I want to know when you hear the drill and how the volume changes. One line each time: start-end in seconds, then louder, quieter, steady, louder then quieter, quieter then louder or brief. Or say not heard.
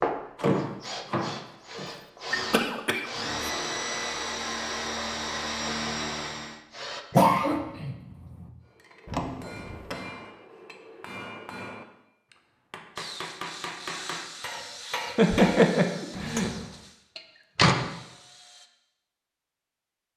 0.0-7.0 louder
12.9-18.7 quieter.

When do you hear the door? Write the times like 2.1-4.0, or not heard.
0.3-2.4, 9.1-10.1, 17.1-17.9.